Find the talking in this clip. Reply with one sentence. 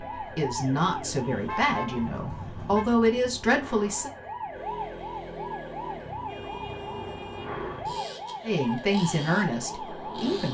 The talking can be heard from 0.0 to 4.1 s and from 8.4 to 10.4 s.